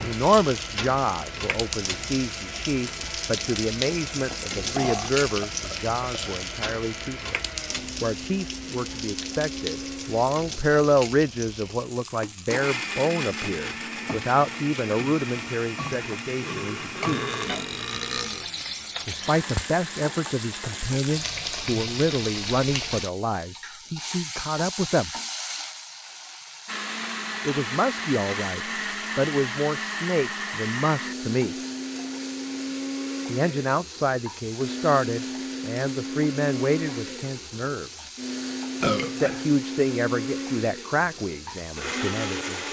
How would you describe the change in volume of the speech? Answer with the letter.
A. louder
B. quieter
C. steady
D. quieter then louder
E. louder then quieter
C.